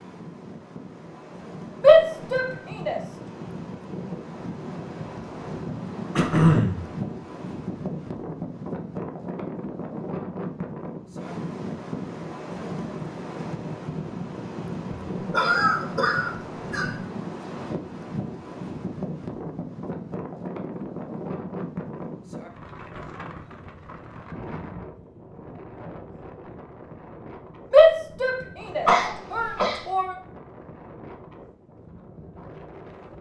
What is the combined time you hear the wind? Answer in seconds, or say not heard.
33 s.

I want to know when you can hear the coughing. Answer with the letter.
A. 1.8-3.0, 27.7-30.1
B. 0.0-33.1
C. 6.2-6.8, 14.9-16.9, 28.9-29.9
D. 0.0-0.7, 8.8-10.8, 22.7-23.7
C.